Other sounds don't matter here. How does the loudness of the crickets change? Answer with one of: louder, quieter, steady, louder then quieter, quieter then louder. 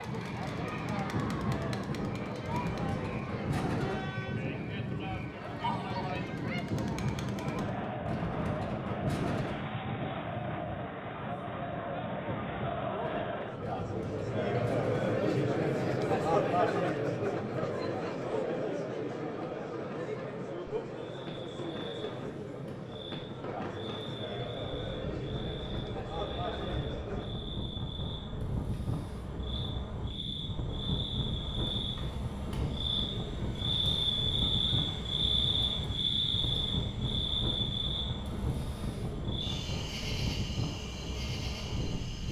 louder then quieter.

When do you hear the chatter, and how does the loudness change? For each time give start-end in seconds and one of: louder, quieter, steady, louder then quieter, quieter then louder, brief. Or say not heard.
0.0-27.4 louder then quieter.